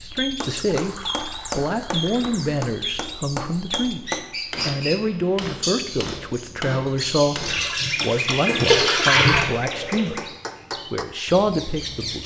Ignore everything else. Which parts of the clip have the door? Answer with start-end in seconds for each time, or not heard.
not heard.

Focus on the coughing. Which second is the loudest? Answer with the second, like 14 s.
9 s.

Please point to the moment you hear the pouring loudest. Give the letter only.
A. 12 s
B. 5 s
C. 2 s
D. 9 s
D.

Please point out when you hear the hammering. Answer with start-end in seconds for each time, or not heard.
0.1-11.1.